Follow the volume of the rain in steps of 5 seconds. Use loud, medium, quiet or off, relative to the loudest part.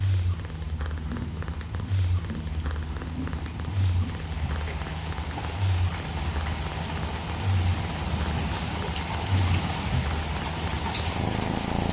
medium, loud, loud.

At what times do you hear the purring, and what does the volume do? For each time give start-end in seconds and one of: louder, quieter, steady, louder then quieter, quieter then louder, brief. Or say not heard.
0.0-11.8 steady.